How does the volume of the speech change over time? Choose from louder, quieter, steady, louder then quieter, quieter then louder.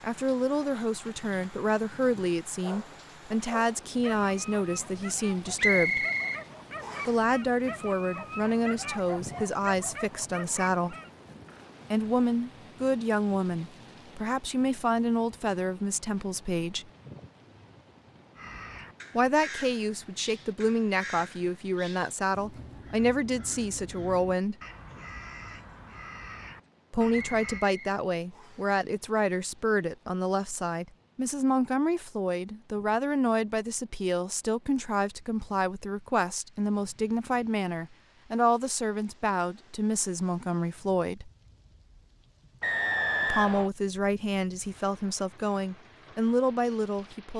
steady.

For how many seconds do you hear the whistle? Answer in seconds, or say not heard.
4 s.